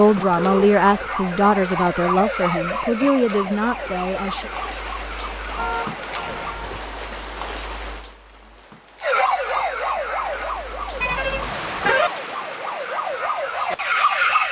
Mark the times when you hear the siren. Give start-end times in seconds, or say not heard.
0.0-6.6, 9.0-14.4.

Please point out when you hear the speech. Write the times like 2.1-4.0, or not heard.
0.0-4.5.